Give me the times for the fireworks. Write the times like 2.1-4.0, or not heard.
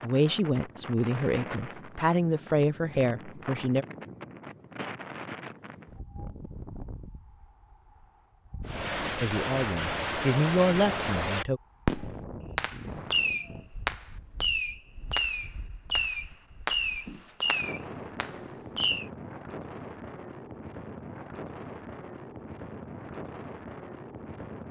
8.7-19.1.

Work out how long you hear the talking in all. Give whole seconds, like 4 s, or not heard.
6 s.